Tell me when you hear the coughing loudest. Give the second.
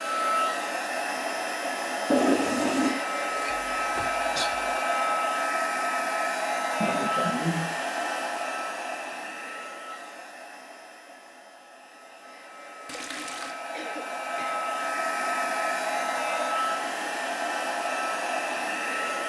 7 s.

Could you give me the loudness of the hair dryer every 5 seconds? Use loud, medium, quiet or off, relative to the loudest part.
loud, loud, medium, loud.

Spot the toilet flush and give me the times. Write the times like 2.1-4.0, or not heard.
2.1-3.0, 12.8-13.6.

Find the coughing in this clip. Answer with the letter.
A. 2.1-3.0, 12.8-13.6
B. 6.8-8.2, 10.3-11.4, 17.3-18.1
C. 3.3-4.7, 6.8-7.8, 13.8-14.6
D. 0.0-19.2
C.